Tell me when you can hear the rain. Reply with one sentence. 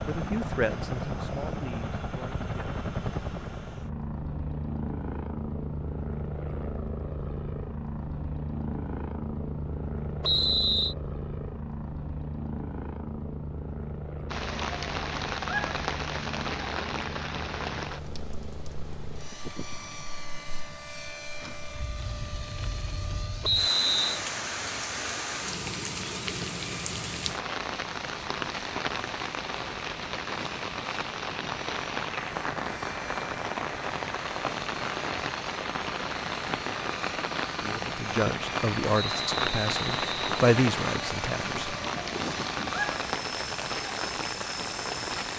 You can hear the rain from 14.3 to 45.3 s.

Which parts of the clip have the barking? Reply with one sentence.
The barking can't be heard in this clip.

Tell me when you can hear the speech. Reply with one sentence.
You can hear the speech from 0.1 to 2.8 s and from 37.6 to 41.8 s.